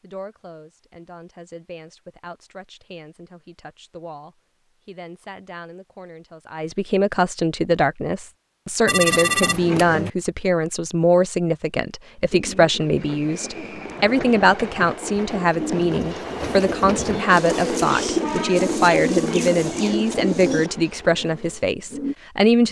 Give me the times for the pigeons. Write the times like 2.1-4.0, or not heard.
12.3-22.1.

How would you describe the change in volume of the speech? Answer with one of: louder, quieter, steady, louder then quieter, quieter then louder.
louder.